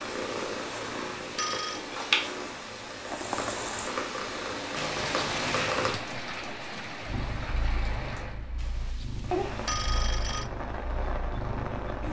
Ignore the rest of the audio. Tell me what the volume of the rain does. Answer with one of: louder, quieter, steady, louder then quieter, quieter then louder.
steady.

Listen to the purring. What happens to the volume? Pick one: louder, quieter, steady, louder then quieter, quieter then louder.
quieter.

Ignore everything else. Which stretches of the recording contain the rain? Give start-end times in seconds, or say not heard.
3.0-12.0.